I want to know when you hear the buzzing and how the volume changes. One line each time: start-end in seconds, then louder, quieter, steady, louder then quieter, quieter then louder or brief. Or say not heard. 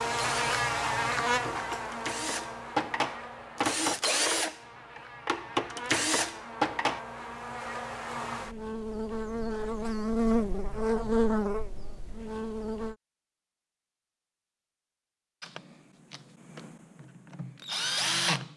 0.0-12.9 quieter then louder.